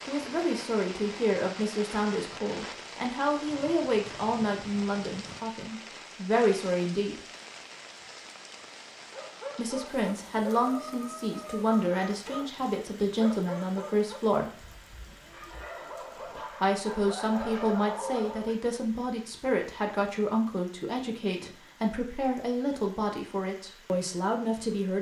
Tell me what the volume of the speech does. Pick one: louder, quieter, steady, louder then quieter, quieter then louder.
steady.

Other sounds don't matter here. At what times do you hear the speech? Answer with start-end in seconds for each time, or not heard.
0.0-7.2, 9.6-14.6, 16.5-24.9.